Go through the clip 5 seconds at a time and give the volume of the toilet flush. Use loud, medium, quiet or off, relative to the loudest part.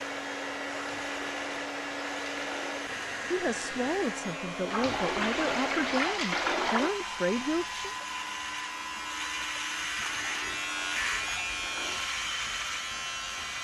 medium, loud, quiet.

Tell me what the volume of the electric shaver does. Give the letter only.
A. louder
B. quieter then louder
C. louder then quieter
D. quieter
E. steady
A.